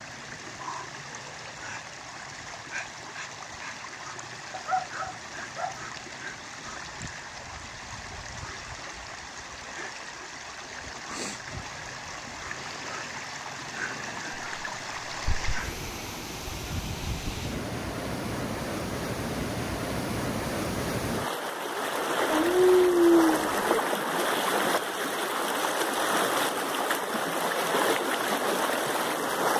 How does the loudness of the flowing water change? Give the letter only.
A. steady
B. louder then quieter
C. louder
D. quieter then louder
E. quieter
C.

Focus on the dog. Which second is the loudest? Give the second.
23 s.